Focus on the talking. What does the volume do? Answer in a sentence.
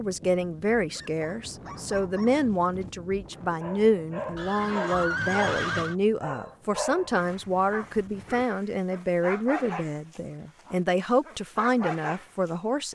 The volume of the talking stays about the same.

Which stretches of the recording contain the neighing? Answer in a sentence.
The neighing can be heard from 4.3 to 6.0 s.